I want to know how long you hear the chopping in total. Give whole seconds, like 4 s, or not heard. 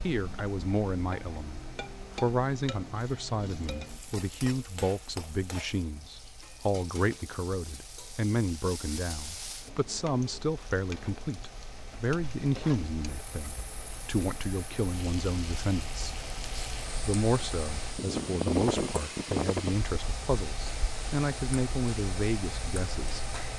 not heard.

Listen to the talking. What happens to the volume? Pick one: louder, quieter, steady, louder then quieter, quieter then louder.
steady.